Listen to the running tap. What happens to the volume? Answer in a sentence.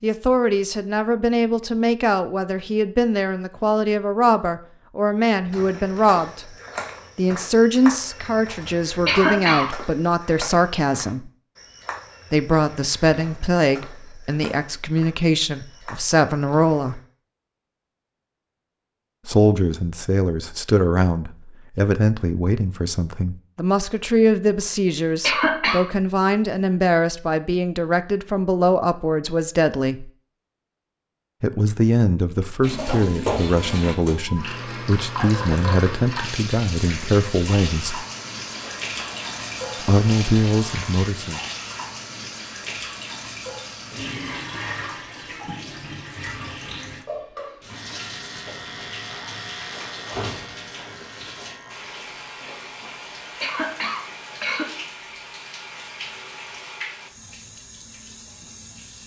The volume of the running tap goes down.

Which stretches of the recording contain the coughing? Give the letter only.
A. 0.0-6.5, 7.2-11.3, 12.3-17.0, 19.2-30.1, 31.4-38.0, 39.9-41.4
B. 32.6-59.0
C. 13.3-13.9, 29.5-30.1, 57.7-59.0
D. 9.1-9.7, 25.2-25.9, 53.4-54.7
D.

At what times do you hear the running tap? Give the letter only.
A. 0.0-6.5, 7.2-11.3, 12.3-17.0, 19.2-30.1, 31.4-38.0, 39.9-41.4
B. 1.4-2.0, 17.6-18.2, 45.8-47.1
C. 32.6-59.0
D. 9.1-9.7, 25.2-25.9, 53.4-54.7
C.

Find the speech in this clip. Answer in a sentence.
The speech can be heard from 0.0 to 6.5 s, from 7.2 to 11.3 s, from 12.3 to 17.0 s, from 19.2 to 30.1 s, from 31.4 to 38.0 s and from 39.9 to 41.4 s.